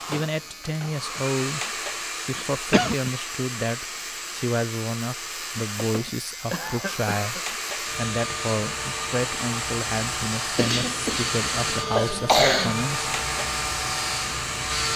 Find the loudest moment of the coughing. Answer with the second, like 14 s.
12 s.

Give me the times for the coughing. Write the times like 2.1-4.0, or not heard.
2.4-3.1, 5.9-7.4, 10.6-12.8.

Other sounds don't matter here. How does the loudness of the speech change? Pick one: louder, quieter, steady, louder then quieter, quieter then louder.
steady.